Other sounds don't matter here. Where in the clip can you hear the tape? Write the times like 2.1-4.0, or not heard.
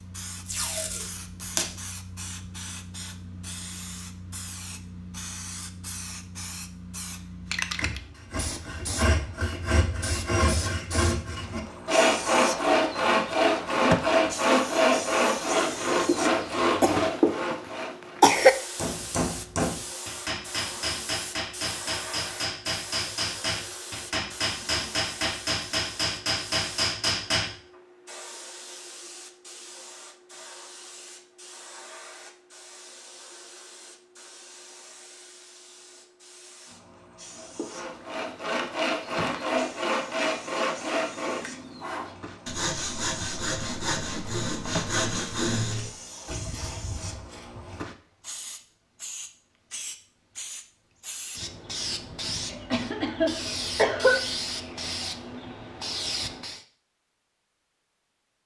0.5-1.8.